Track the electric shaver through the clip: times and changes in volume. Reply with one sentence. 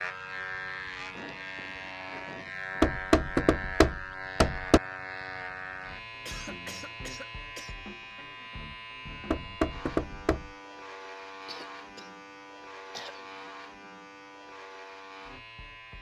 The electric shaver can be heard from 0.0 to 15.9 s, getting quieter.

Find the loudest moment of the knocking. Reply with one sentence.
The volume of the knocking peaks at 3 seconds.